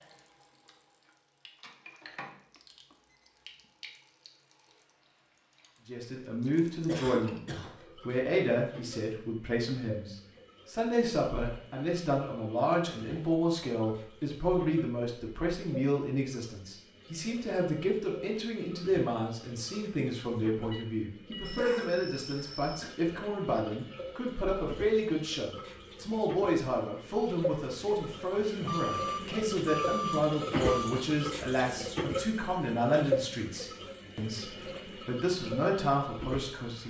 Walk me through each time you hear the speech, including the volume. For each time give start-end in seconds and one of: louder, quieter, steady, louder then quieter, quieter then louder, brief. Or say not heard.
5.8-36.8 steady.